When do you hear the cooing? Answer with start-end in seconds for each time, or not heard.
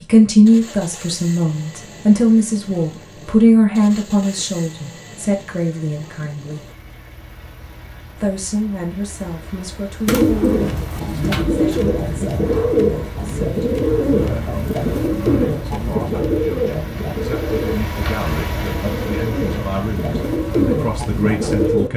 10.1-21.9.